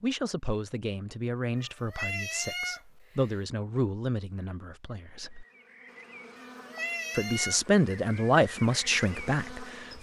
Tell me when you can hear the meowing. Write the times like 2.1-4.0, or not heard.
1.6-3.4, 6.3-7.6.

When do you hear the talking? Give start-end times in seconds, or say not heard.
0.0-5.5, 7.2-9.9.